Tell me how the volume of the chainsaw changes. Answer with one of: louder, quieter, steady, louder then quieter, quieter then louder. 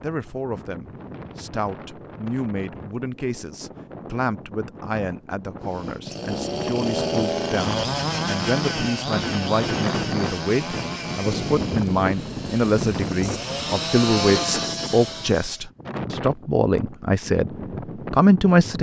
quieter then louder.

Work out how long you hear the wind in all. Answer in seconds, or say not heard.
19 s.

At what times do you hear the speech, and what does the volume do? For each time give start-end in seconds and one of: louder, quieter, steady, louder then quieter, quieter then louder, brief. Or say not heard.
0.0-17.5 louder
18.1-18.7 brief.